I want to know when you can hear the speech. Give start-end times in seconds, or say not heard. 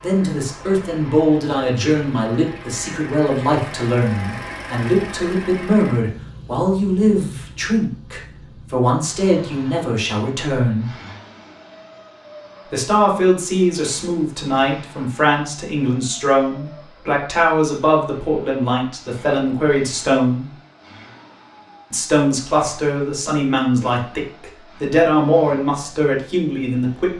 0.0-10.9, 12.7-20.5, 21.9-27.1.